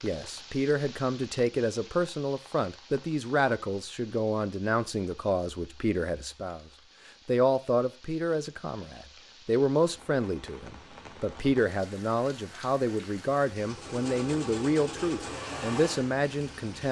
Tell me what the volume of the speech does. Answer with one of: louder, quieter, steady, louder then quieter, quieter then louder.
steady.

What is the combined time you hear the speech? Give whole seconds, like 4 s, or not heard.
16 s.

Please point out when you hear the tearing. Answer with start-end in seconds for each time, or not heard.
not heard.